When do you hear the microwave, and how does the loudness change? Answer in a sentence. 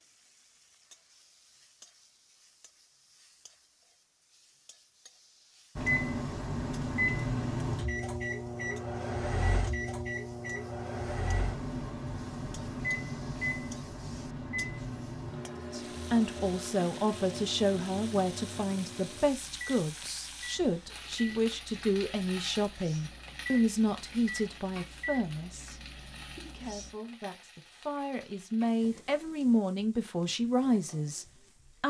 You can hear the microwave from 5.8 to 26.9 s, getting quieter.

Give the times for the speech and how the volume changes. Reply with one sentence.
The speech can be heard from 15.7 to 31.8 s, getting quieter then louder.